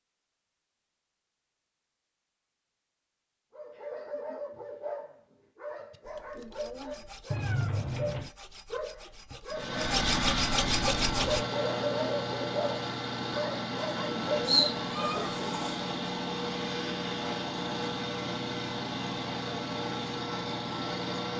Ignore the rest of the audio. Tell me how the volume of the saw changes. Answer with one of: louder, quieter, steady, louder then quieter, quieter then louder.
louder.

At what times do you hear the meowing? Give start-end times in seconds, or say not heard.
7.3-8.3, 14.4-15.8.